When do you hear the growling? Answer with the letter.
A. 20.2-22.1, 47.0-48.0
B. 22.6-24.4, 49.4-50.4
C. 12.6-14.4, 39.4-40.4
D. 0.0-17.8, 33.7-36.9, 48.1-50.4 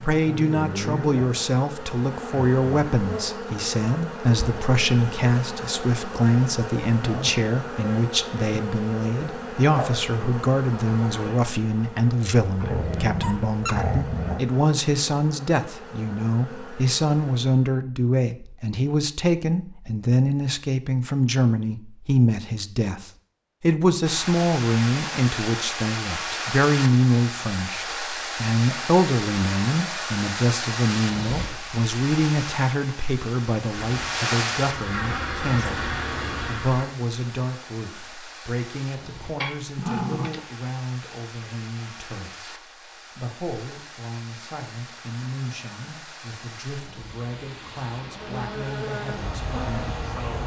C.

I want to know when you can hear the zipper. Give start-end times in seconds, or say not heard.
not heard.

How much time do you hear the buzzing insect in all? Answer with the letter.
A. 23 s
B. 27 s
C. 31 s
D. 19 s
A.